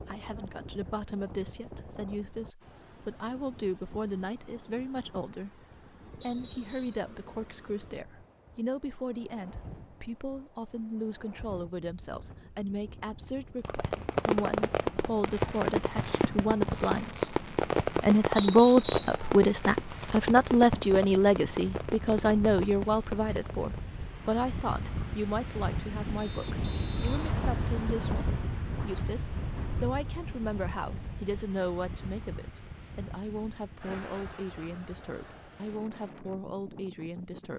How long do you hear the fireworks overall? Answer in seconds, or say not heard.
10 s.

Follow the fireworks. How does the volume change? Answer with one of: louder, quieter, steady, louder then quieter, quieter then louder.
quieter.